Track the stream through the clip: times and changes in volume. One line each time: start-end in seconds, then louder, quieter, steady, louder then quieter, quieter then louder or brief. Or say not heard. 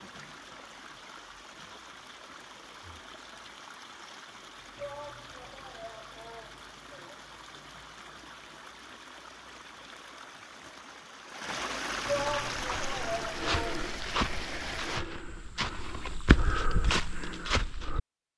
0.0-15.0 louder.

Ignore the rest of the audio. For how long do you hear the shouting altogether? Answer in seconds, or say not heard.
4 s.